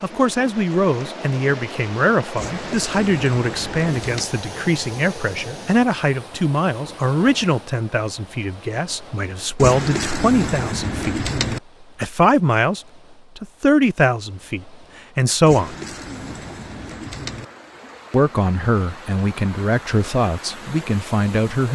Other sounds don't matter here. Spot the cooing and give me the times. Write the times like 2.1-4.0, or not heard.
2.4-4.3, 9.6-11.6, 15.4-17.4.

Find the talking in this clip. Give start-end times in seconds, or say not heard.
0.0-11.2, 12.0-15.8, 18.1-21.7.